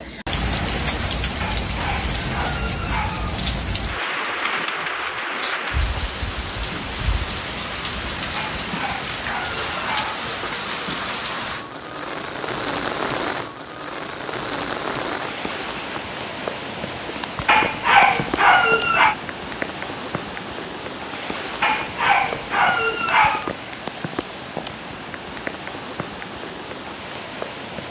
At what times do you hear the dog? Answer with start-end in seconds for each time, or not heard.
1.4-3.4, 8.3-10.2, 17.4-19.1, 21.6-23.5.